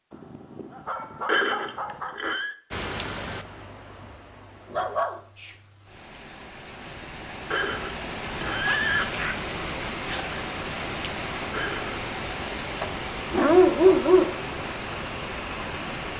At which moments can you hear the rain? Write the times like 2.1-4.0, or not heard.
2.7-16.1.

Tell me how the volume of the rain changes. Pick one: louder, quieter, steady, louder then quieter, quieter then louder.
louder.